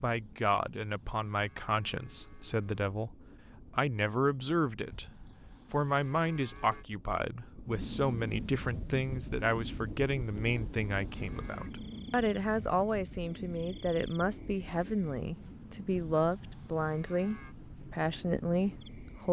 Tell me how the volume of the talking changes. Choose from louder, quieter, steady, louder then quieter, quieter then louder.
steady.